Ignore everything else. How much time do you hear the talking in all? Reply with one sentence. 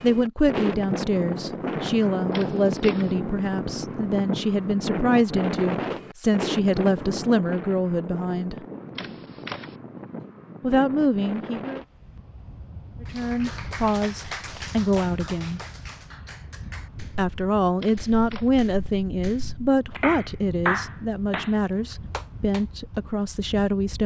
The talking can be heard for 19 seconds in total.